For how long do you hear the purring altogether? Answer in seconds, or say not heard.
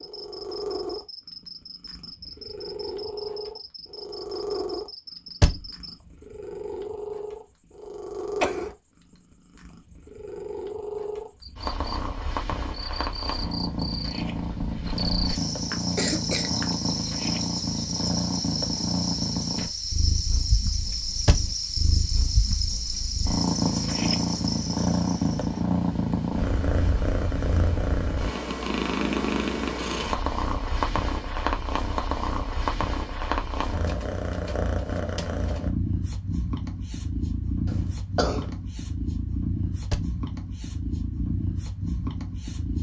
43 s.